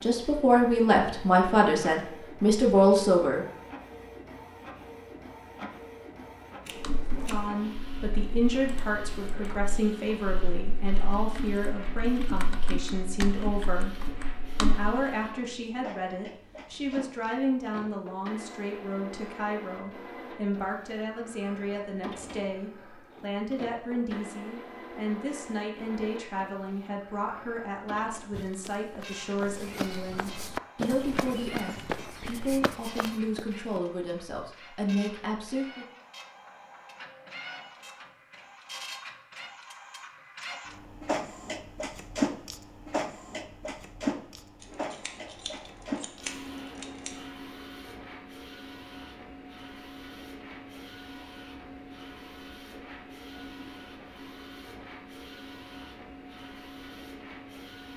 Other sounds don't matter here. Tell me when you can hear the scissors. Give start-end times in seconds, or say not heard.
6.7-7.7, 44.6-47.2.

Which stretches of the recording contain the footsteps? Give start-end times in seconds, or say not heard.
28.3-33.8.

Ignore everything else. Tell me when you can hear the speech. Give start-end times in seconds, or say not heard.
0.0-3.5, 7.1-35.9.